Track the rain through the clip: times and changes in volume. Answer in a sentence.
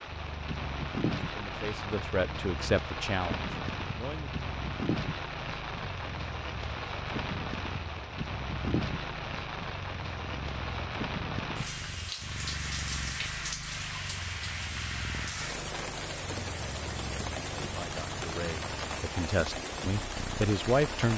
The rain can be heard from 0.0 to 21.1 s, at a steady volume.